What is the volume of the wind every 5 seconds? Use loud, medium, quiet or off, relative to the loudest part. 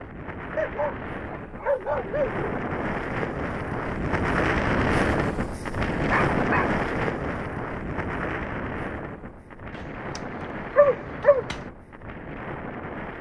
loud, loud, medium.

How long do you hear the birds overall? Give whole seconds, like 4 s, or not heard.
not heard.